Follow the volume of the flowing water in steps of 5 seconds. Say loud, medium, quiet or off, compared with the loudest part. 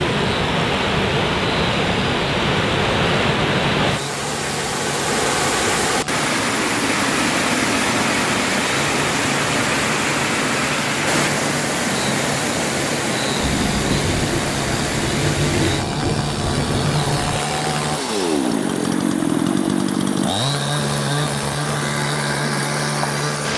loud, loud, loud, medium, medium.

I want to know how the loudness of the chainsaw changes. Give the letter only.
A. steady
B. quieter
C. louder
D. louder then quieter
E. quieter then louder
C.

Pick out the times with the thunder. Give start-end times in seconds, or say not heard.
13.3-17.4.